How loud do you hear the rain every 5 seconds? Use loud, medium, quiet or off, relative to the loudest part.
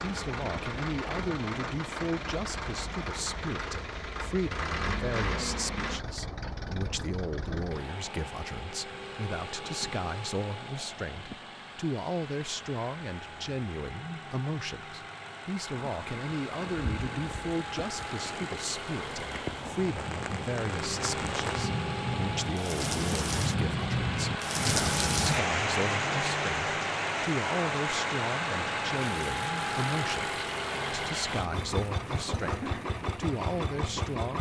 off, off, off, medium, loud, loud, medium.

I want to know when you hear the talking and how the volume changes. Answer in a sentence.
You can hear the talking from 0.0 to 34.3 s, at a steady volume.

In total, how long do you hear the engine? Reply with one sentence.
You can hear the engine for 34 seconds altogether.